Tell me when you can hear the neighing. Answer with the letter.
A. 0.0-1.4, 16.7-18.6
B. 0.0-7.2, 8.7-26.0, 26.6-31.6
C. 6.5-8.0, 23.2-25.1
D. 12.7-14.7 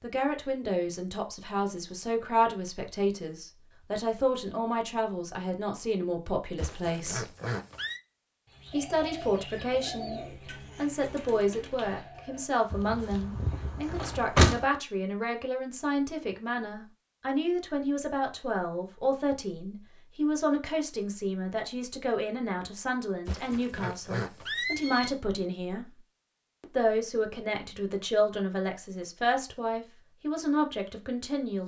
C.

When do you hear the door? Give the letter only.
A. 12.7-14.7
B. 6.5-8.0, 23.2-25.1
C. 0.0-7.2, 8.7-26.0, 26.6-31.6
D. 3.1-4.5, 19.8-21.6
A.